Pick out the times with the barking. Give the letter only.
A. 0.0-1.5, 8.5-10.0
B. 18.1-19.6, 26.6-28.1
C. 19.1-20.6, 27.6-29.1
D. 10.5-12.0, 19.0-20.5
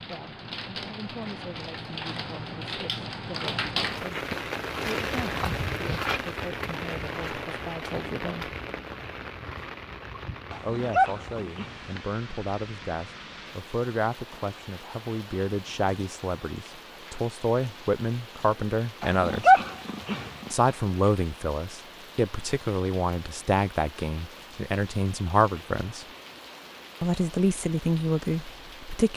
D.